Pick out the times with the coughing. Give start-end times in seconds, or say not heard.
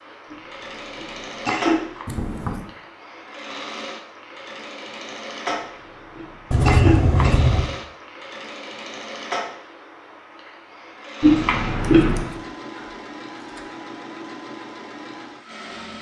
0.9-2.0, 6.2-7.3, 11.2-12.3.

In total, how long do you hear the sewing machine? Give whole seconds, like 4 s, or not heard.
16 s.